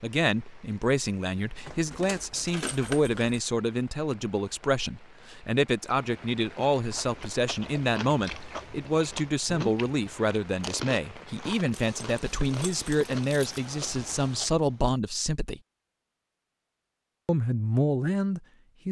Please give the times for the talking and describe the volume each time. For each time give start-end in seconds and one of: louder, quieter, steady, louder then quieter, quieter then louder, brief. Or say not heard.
0.0-15.6 steady
17.2-18.8 brief.